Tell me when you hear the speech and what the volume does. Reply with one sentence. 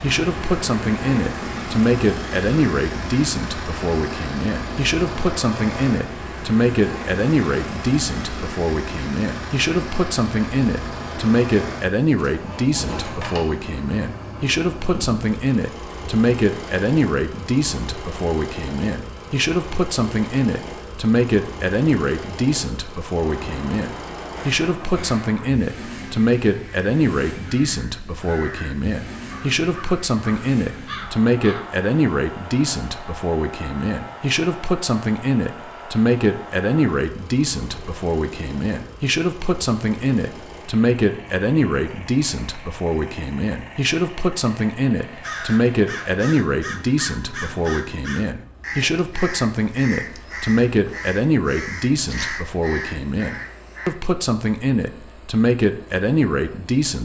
You can hear the speech from 0.0 to 56.9 s, at a steady volume.